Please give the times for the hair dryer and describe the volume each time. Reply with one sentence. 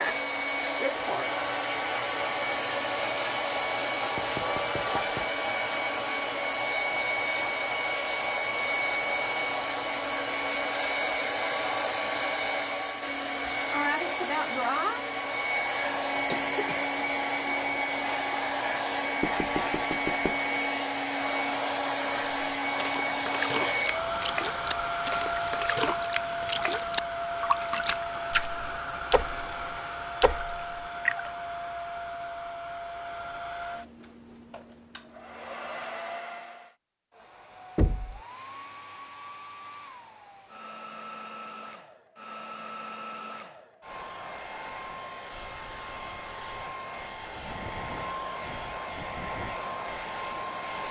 The hair dryer can be heard from 0.0 to 50.8 s, getting quieter.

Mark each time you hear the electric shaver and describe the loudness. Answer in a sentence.
You can't hear the electric shaver here.